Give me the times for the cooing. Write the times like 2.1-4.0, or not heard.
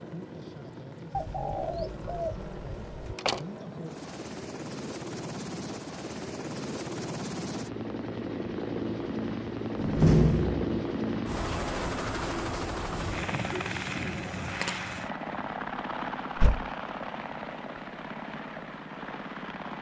1.1-3.1, 13.5-14.8.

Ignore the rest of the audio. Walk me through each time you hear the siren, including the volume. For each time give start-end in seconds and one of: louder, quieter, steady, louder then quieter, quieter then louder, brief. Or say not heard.
not heard.